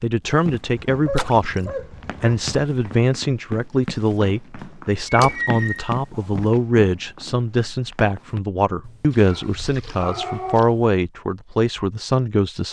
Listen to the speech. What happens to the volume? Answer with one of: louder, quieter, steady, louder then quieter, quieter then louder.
steady.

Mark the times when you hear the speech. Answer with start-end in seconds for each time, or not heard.
0.0-12.6.